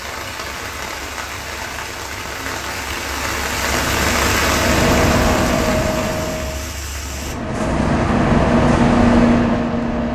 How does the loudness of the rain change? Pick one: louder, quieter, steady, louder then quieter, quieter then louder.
louder then quieter.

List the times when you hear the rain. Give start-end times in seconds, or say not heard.
0.0-7.3.